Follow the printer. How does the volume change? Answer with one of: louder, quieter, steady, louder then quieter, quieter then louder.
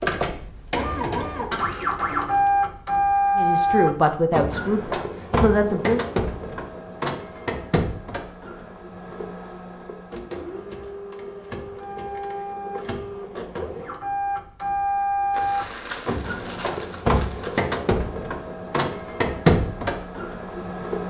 quieter then louder.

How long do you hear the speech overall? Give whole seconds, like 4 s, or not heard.
3 s.